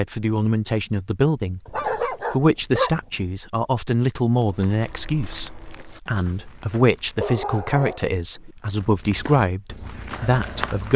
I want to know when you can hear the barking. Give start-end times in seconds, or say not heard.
1.6-2.9, 7.2-8.6.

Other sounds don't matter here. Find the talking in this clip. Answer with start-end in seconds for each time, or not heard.
0.0-10.9.